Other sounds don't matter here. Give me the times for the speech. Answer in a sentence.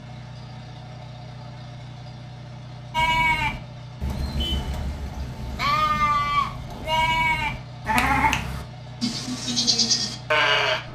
The speech can't be heard in this clip.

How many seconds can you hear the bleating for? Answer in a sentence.
You can hear the bleating for 8 seconds altogether.